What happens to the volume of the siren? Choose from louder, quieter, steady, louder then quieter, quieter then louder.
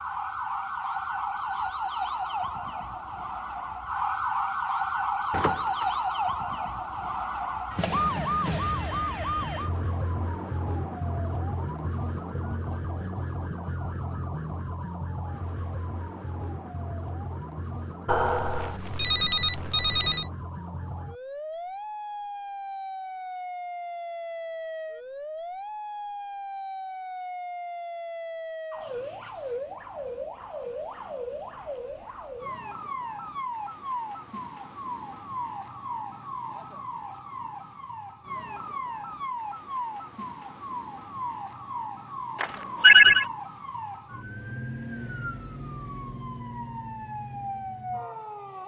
quieter.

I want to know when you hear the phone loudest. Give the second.
43 s.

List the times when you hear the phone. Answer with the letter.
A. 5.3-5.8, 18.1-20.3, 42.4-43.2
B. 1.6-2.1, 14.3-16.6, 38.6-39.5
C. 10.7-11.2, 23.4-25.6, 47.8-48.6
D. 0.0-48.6
A.